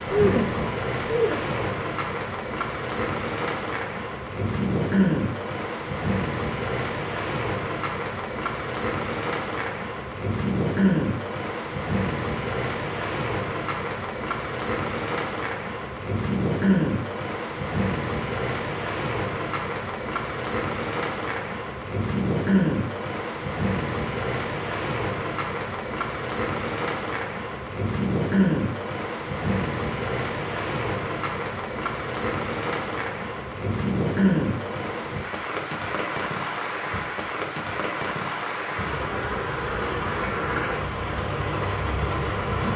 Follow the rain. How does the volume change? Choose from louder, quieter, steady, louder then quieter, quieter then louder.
steady.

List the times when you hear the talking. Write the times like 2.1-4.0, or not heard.
0.1-1.8.